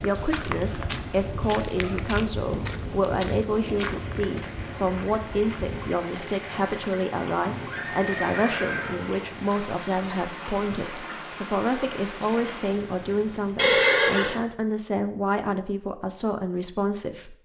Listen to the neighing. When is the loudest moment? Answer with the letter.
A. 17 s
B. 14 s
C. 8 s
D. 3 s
B.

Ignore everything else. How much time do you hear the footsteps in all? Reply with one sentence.
You can hear the footsteps for 6 seconds altogether.